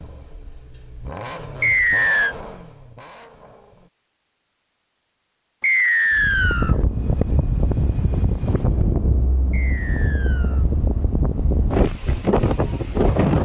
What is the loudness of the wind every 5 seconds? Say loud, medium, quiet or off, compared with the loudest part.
off, loud, loud.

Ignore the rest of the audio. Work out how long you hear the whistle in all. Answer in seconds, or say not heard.
3 s.